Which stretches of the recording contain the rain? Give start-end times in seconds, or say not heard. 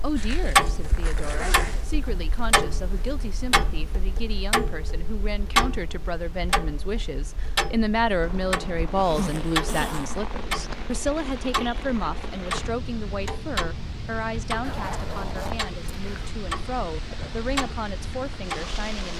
8.2-19.1.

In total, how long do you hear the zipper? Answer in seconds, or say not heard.
5 s.